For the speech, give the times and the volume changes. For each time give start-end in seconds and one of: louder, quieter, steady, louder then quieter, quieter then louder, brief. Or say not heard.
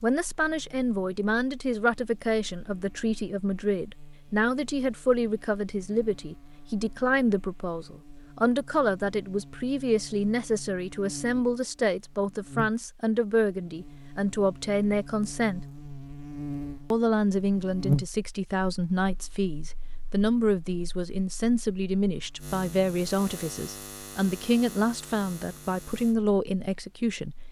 0.0-15.7 steady
16.9-27.4 steady.